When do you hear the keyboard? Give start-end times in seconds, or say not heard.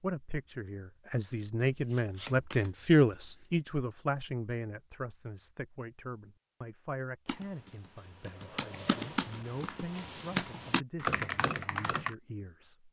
7.2-12.2.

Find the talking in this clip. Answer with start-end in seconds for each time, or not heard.
0.0-12.8.